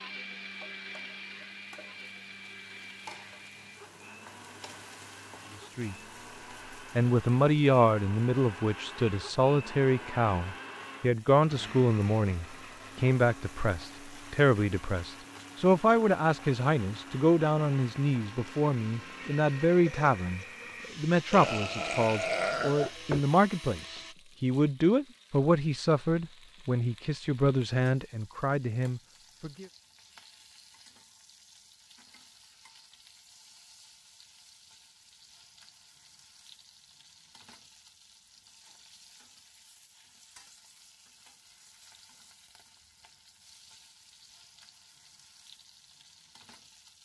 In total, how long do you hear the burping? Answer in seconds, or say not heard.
2 s.